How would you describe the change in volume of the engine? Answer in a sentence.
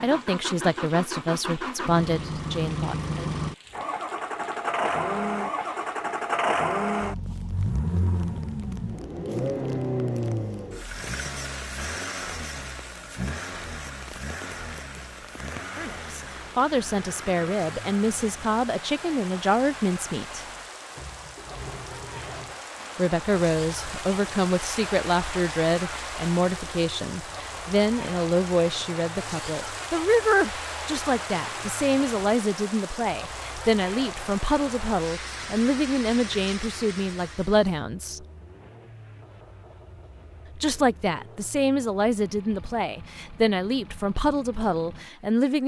The loudness of the engine goes down.